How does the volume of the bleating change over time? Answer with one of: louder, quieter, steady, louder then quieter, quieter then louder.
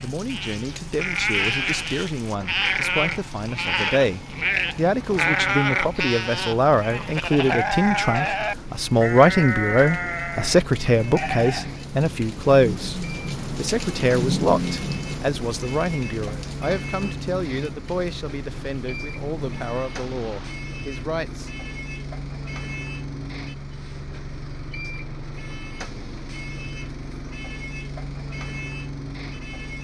steady.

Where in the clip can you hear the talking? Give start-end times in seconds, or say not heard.
0.0-21.5.